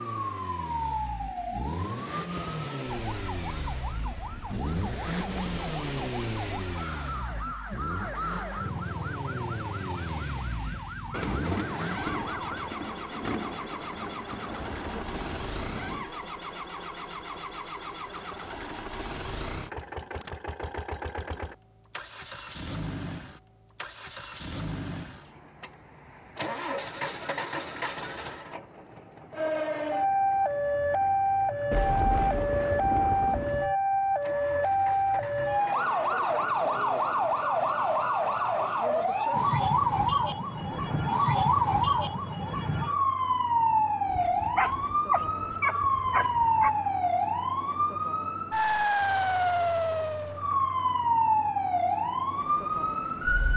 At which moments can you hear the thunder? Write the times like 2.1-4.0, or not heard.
11.1-16.1, 31.7-33.7, 40.5-41.1.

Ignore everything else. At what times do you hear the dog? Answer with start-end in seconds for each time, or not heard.
44.0-46.7.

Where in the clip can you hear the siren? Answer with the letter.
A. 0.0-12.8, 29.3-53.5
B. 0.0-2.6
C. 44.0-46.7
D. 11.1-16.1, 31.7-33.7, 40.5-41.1
A.